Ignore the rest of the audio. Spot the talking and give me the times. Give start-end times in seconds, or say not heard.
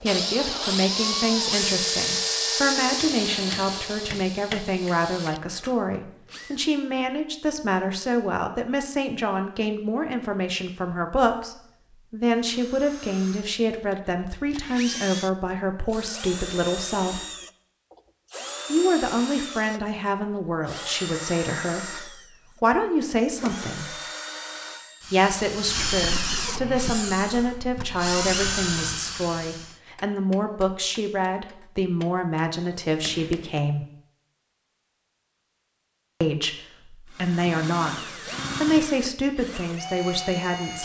0.0-17.2, 18.7-24.0, 25.1-33.9, 36.2-40.8.